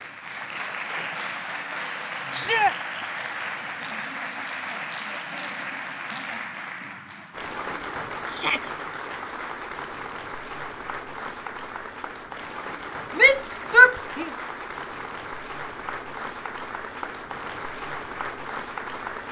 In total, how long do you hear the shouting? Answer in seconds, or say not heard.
2 s.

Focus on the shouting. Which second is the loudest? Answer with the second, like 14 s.
14 s.